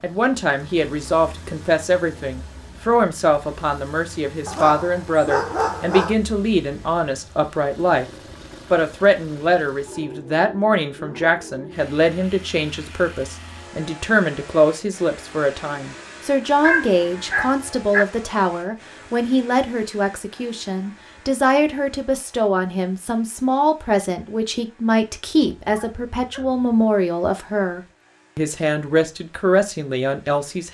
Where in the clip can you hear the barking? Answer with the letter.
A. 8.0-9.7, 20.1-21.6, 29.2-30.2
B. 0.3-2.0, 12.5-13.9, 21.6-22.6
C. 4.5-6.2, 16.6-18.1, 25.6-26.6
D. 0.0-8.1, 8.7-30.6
C.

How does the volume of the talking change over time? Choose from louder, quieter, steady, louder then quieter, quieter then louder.
steady.